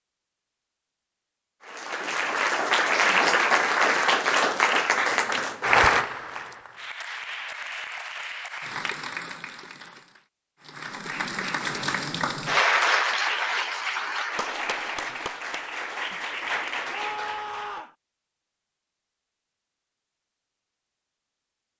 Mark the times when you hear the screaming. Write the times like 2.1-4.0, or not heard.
16.9-17.9.